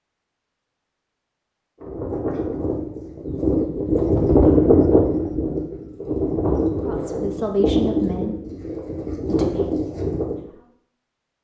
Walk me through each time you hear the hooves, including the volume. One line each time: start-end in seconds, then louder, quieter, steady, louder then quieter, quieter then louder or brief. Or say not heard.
1.8-10.4 louder then quieter.